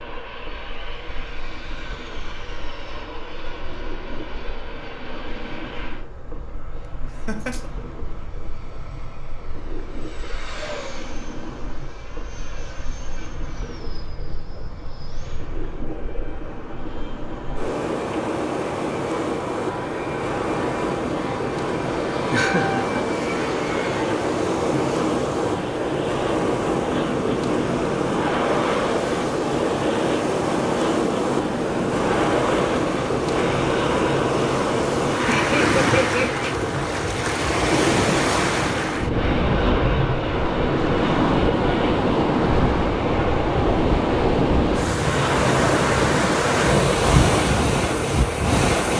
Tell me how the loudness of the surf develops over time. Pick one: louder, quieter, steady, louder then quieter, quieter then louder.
louder.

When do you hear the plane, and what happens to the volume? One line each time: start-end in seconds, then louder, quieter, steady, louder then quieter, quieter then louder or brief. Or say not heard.
0.0-48.9 louder.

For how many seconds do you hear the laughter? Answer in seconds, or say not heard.
2 s.